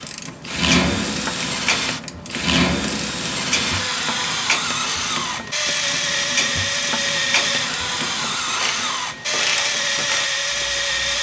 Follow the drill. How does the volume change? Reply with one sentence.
The loudness of the drill stays about the same.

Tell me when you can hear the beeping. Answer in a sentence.
The beeping can't be heard in this clip.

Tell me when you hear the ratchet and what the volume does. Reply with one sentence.
You can hear the ratchet from 0.0 to 11.1 s, at a steady volume.